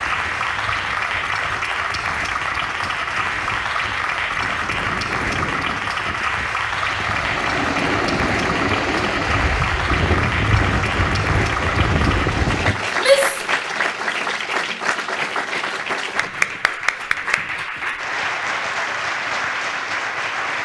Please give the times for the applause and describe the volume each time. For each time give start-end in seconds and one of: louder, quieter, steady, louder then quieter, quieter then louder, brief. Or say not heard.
0.0-20.5 steady.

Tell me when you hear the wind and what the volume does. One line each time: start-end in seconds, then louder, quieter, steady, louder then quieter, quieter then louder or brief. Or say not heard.
0.0-12.8 louder.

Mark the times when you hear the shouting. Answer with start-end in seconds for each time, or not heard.
12.9-13.6.